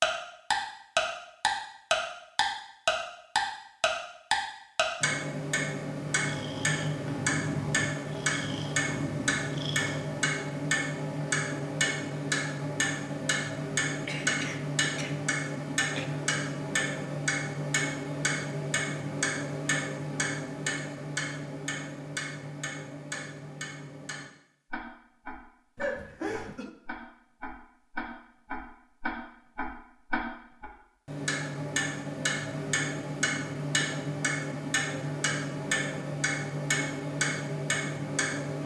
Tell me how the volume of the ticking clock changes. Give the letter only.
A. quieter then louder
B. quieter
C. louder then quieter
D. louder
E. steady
A.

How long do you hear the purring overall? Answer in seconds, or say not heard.
4 s.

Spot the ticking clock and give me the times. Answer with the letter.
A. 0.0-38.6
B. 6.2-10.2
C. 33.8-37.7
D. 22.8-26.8
A.